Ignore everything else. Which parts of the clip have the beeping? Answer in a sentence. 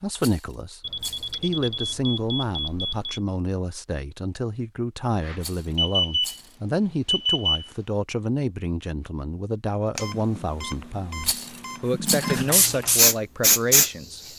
The beeping can be heard from 0.8 to 3.2 s, from 5.2 to 6.4 s, from 7.0 to 7.7 s and from 9.9 to 12.4 s.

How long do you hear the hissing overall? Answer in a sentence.
You can hear the hissing for 3 seconds altogether.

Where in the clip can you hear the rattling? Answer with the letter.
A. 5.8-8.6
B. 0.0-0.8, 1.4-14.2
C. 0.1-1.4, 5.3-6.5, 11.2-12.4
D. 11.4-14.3
C.